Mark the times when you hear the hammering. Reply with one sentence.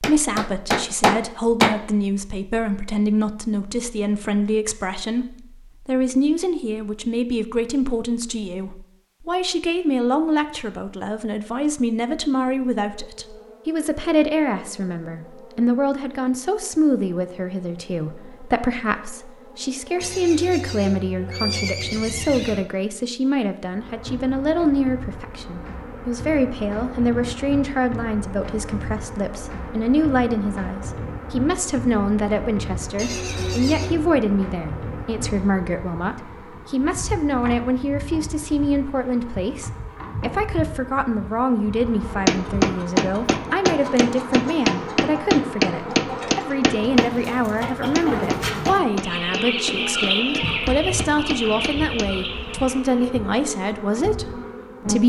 The hammering can be heard from 0.0 to 1.8 s and from 42.2 to 52.1 s.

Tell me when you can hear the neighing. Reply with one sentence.
You can hear the neighing from 20.0 to 22.6 s and from 33.0 to 34.0 s.